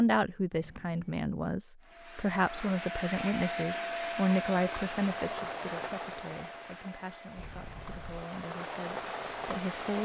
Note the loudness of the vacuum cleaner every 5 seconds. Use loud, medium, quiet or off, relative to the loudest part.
loud, medium.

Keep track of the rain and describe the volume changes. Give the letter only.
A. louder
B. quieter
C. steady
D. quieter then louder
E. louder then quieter
D.